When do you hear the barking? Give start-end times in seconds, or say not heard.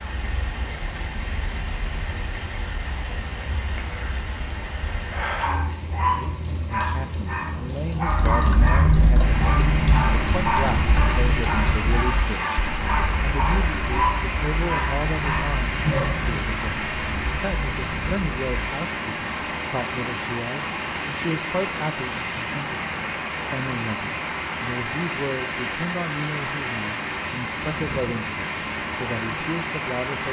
5.3-16.4.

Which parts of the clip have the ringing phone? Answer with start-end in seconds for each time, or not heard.
not heard.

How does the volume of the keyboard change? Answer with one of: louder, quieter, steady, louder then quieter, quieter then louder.
quieter.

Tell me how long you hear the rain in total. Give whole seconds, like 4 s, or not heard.
30 s.